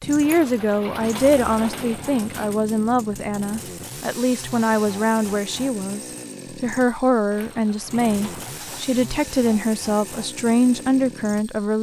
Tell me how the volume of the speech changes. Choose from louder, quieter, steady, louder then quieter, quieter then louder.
steady.